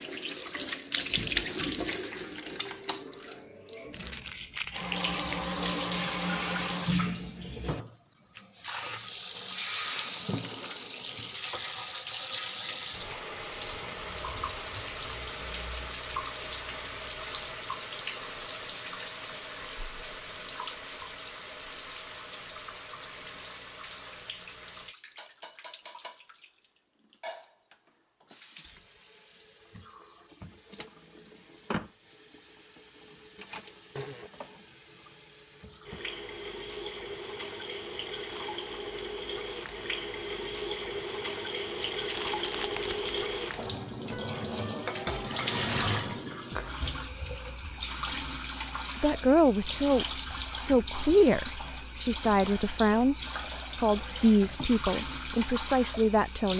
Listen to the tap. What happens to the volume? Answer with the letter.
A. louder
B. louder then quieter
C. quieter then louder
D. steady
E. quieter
C.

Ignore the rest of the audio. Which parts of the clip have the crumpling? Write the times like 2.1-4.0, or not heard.
3.9-5.5, 41.8-43.3.